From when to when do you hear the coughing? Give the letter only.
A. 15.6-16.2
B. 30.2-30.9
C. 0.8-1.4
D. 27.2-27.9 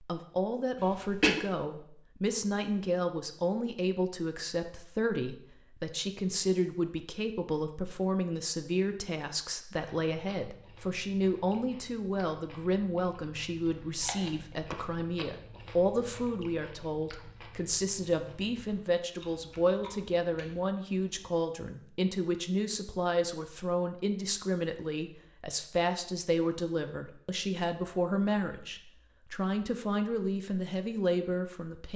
C.